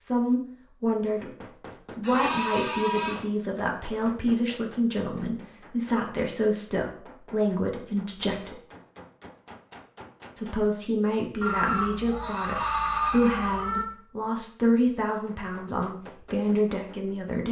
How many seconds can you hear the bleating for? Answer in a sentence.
The bleating can be heard for 4 seconds in total.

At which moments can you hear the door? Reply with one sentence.
The door can't be heard in this clip.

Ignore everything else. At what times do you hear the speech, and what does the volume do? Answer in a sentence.
The speech can be heard briefly from 0.0 to 1.3 s; from 1.9 to 8.6 s, at a steady volume; and from 10.3 to 17.4 s, at a steady volume.